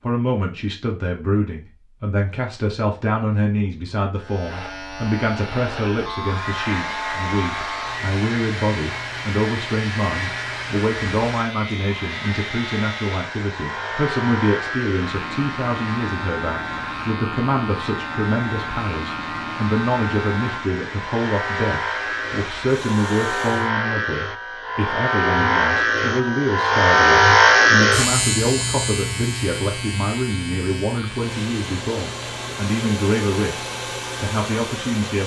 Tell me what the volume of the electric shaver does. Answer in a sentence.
The loudness of the electric shaver goes up, then down.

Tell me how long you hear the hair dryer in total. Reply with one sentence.
You can hear the hair dryer for 22 seconds altogether.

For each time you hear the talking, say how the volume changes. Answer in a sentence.
The talking can be heard from 0.0 to 35.2 s, at a steady volume.